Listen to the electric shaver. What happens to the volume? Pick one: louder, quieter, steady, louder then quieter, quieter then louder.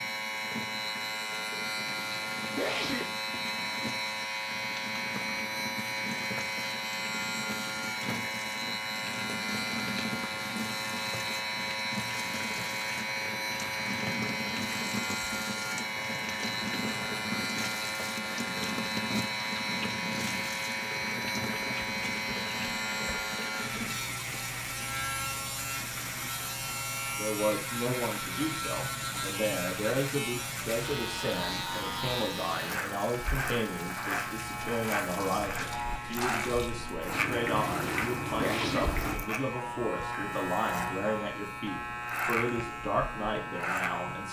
steady.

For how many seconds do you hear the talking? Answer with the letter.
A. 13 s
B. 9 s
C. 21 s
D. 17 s
D.